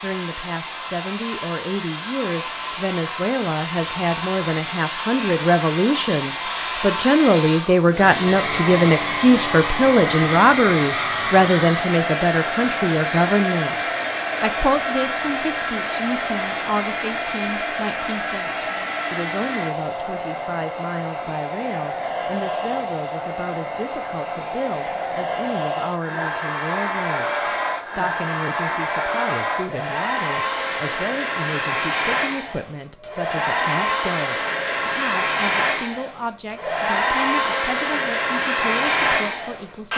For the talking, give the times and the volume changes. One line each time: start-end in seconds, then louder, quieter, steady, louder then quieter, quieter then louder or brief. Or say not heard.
0.0-39.9 quieter.